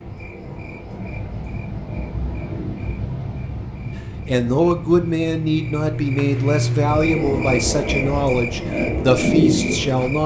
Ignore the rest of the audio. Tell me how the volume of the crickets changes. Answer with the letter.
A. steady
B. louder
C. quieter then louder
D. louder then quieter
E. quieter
B.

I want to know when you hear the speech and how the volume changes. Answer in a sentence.
You can hear the speech from 4.2 to 10.2 s, at a steady volume.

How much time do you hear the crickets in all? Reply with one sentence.
You can hear the crickets for 10 seconds altogether.